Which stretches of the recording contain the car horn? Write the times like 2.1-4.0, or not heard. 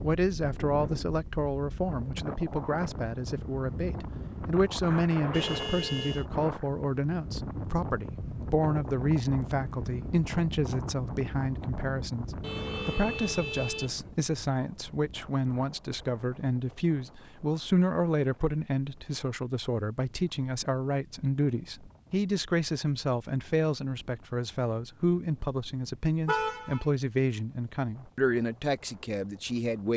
5.3-6.2, 12.4-14.0, 26.2-26.9.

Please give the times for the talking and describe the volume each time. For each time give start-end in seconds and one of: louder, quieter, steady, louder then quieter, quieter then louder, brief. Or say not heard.
0.0-29.9 steady.